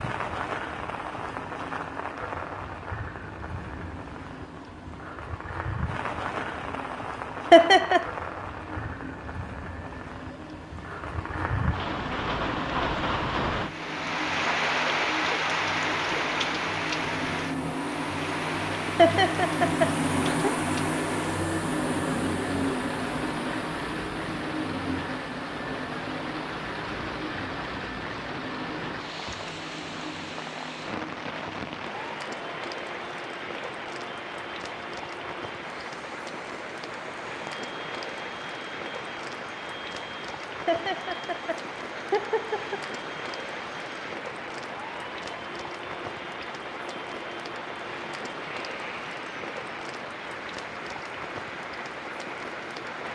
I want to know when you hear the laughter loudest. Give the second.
8 s.